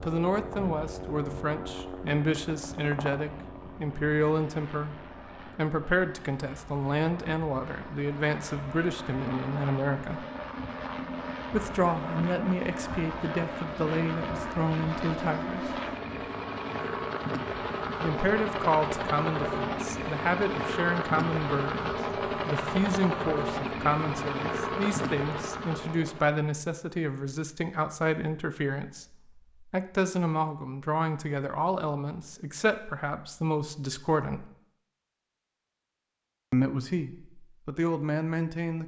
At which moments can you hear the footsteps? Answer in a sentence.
The footsteps can't be heard in this clip.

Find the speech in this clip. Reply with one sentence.
The speech can be heard from 0.0 to 10.2 s, from 11.5 to 15.7 s, from 18.0 to 34.5 s and from 36.5 to 38.8 s.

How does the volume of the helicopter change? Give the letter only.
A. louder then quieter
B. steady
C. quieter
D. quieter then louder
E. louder
E.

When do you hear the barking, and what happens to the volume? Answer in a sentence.
The barking can't be heard in this clip.